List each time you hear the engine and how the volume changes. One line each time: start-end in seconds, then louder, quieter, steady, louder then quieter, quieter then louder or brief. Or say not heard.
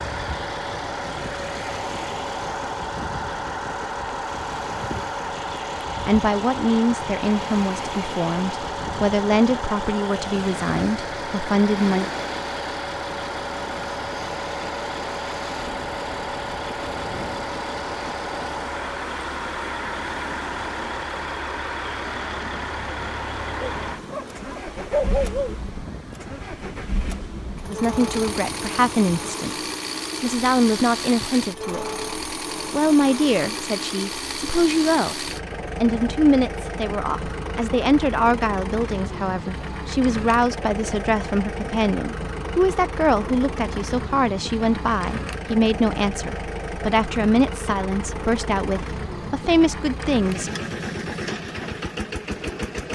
0.0-52.9 steady.